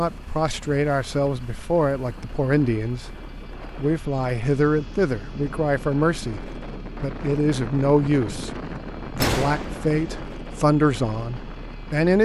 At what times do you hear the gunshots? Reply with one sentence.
The gunshots can be heard from 9.2 to 10.2 s.